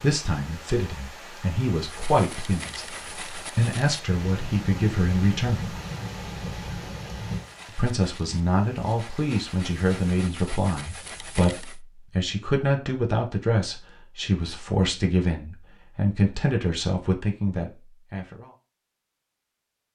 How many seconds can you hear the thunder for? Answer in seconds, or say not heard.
3 s.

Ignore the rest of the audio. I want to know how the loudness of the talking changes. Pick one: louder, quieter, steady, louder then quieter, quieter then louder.
steady.